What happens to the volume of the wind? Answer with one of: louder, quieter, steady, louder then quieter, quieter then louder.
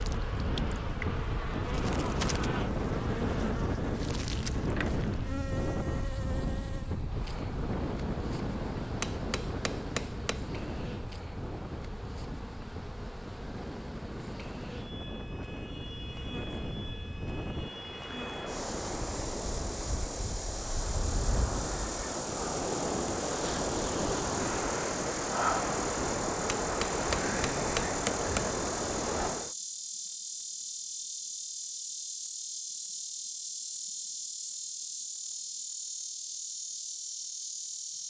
quieter then louder.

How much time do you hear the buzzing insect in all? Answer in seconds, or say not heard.
38 s.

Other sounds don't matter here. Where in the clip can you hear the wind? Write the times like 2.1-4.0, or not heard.
0.0-29.6.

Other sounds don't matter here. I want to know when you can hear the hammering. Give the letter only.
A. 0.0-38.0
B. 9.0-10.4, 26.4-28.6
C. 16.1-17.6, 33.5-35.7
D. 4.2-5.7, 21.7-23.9
B.